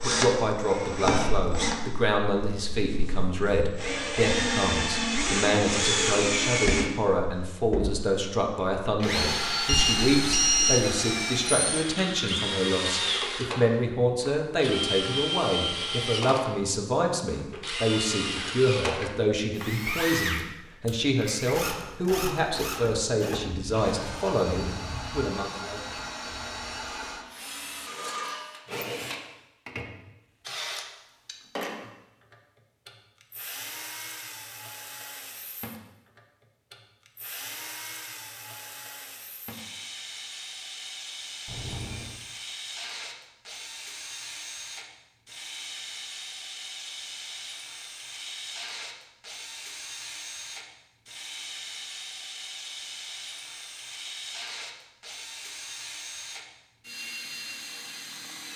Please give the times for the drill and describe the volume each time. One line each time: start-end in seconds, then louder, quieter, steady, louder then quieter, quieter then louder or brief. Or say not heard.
0.0-58.5 quieter.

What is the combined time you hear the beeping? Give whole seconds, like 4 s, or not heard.
2 s.